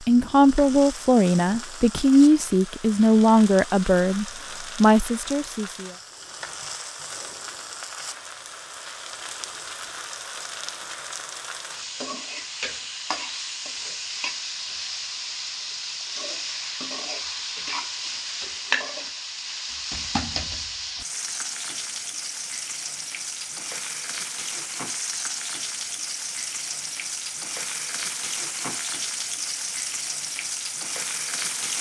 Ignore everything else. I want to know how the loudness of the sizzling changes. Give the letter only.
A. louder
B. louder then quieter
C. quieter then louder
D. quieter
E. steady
A.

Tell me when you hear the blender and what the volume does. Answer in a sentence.
The blender can't be heard in this clip.